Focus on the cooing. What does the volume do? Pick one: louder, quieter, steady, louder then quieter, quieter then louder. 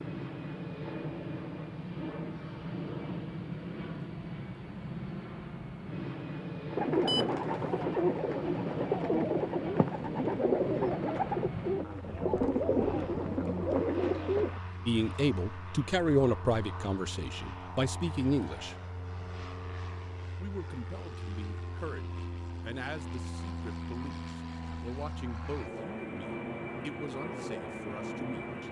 steady.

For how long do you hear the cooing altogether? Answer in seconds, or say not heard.
8 s.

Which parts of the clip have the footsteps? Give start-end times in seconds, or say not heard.
not heard.